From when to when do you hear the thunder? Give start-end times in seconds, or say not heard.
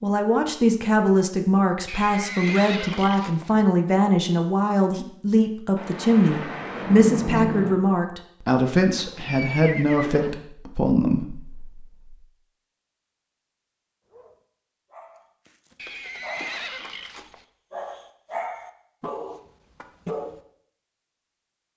5.8-7.8.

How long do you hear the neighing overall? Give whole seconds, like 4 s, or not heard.
5 s.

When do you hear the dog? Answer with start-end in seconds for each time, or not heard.
14.1-20.4.